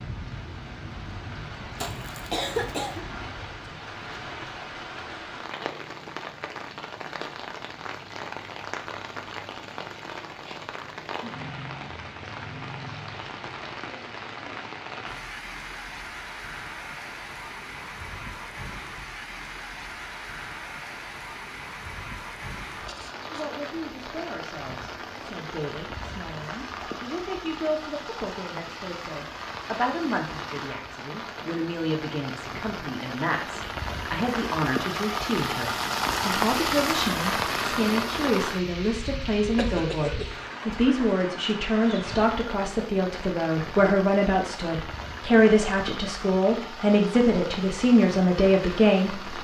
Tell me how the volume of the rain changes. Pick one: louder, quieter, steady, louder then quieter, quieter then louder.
louder then quieter.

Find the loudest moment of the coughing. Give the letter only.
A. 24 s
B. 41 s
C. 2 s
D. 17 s
C.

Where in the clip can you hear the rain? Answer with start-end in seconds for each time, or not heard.
0.0-49.3.